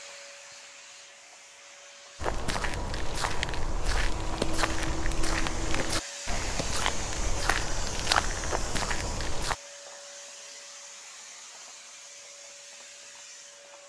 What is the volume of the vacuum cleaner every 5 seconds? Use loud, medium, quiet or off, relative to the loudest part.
medium, loud, medium.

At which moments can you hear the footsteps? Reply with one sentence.
You can hear the footsteps from 2.2 to 9.6 s.